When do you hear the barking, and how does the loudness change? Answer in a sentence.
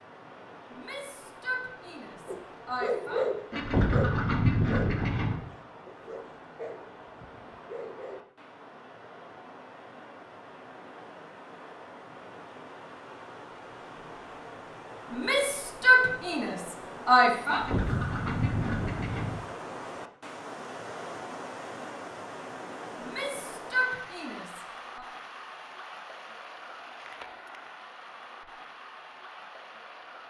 The barking can be heard from 2.2 to 8.2 s, getting quieter.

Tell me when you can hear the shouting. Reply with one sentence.
The shouting can be heard from 0.7 to 3.2 s, from 15.1 to 17.6 s and from 22.9 to 25.1 s.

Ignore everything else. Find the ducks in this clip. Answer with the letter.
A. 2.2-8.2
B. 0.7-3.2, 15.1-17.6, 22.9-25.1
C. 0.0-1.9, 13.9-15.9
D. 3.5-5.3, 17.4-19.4
D.